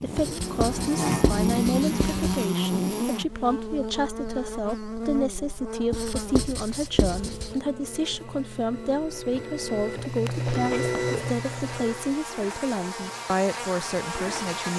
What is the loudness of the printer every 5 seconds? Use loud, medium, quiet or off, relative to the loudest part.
off, medium, loud.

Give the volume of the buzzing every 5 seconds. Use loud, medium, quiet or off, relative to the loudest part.
loud, medium, medium.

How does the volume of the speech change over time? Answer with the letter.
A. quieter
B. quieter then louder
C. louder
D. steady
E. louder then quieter
D.